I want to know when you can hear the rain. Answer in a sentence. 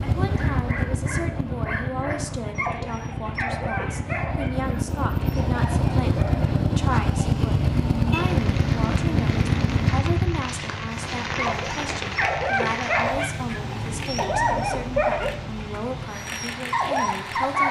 You can hear the rain from 8.1 to 17.6 s.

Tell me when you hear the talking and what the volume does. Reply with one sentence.
The talking can be heard from 0.0 to 17.6 s, at a steady volume.